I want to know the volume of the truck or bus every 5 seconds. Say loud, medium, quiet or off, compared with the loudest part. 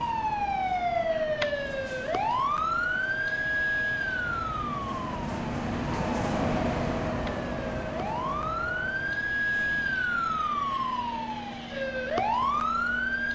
medium, loud, medium.